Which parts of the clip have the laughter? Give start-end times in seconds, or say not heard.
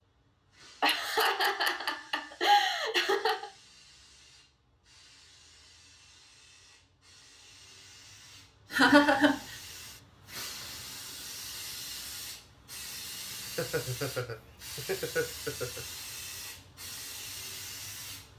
0.8-3.5, 8.7-9.6, 13.3-15.8.